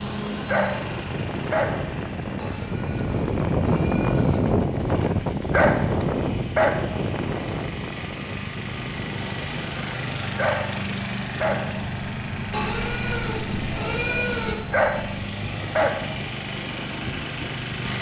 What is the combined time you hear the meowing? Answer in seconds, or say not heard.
4 s.